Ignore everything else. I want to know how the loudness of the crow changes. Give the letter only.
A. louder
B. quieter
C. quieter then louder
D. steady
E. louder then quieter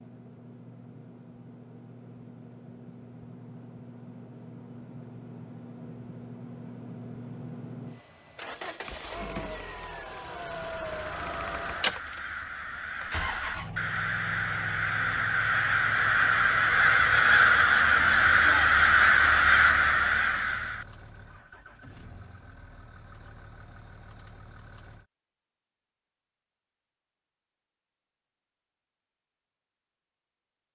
A.